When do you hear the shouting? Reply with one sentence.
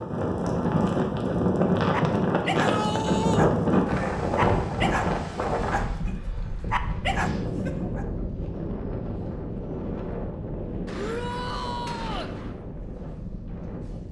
The shouting can be heard from 2.5 to 3.5 s and from 10.9 to 12.3 s.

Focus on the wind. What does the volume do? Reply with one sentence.
The loudness of the wind goes down.